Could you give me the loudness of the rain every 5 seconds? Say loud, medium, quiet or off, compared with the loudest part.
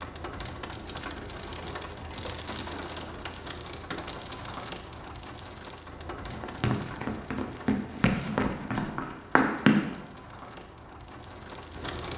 loud, medium, loud.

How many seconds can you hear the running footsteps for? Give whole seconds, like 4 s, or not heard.
4 s.